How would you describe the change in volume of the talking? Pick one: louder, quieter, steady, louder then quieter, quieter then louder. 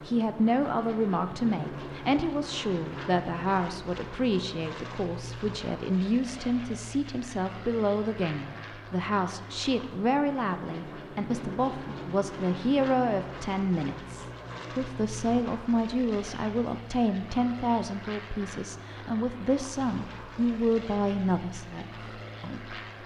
steady.